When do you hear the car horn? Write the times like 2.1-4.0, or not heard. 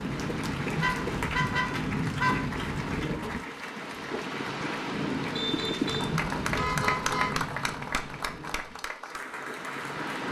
0.8-2.5, 5.3-7.5.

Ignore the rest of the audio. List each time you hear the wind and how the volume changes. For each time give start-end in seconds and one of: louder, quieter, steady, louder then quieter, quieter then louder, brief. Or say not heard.
0.0-10.2 quieter.